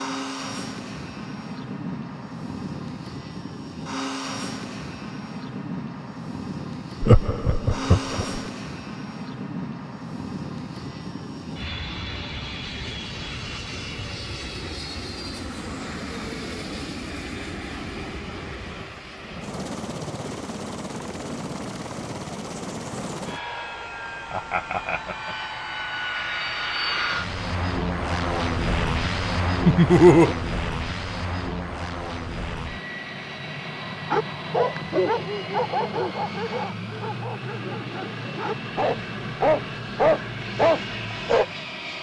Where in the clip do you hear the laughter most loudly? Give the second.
30 s.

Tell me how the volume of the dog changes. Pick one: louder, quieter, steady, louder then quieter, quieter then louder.
quieter then louder.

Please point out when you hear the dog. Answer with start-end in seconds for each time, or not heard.
34.1-41.5.